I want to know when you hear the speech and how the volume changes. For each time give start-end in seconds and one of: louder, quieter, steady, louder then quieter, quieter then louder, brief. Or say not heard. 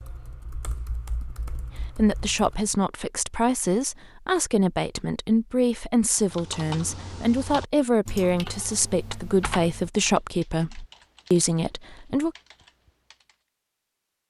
1.9-12.3 steady.